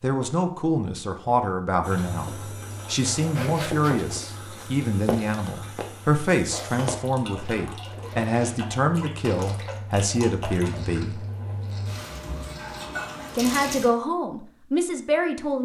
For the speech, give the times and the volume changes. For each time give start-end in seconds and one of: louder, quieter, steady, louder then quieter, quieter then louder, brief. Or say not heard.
0.0-11.2 steady
13.3-15.6 brief.